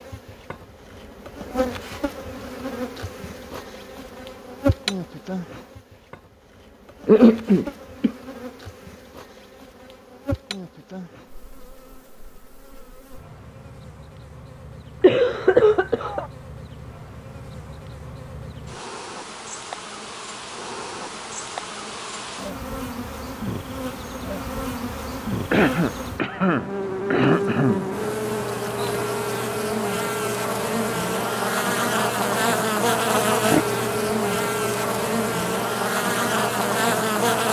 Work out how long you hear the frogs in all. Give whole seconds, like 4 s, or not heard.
not heard.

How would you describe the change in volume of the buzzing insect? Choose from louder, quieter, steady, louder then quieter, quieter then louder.
quieter then louder.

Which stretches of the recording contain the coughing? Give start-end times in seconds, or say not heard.
7.0-8.1, 15.0-16.2, 25.5-27.9.